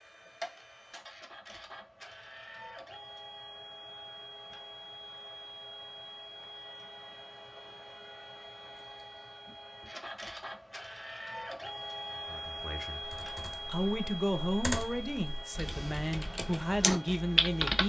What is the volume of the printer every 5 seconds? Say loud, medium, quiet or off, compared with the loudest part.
medium, medium, loud, medium.